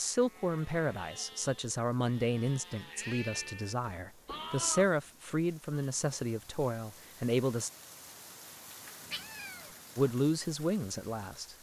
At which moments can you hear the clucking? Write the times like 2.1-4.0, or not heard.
not heard.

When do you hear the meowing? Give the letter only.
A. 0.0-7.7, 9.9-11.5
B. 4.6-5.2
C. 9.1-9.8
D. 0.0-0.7
C.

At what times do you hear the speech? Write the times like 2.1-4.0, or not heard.
0.0-7.7, 9.9-11.5.